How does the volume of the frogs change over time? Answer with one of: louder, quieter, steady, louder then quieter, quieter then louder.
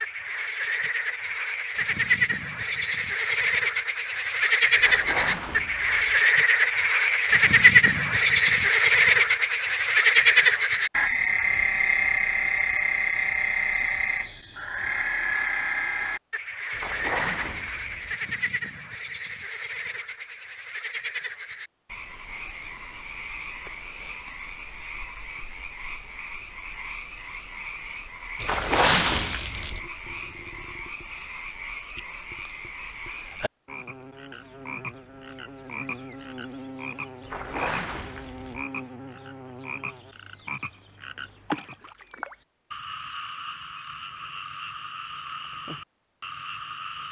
quieter.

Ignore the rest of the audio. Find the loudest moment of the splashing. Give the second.
29 s.